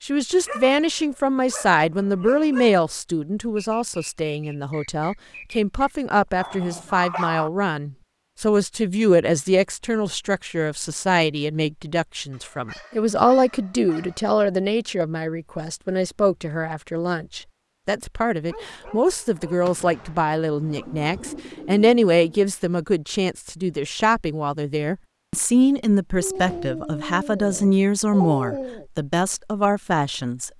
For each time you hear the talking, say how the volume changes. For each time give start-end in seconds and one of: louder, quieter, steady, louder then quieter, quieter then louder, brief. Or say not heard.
0.0-30.5 steady.